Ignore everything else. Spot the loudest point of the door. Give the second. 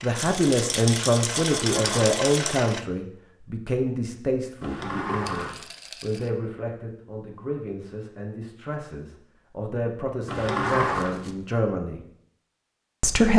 11 s.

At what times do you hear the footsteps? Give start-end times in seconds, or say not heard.
not heard.